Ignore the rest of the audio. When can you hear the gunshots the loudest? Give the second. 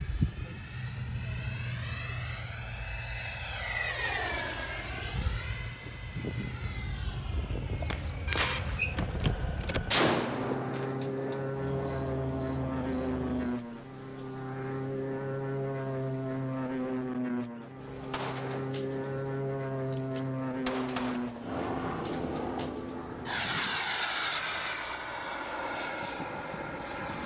10 s.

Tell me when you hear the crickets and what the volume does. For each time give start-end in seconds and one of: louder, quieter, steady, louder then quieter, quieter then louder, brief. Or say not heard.
0.0-27.2 steady.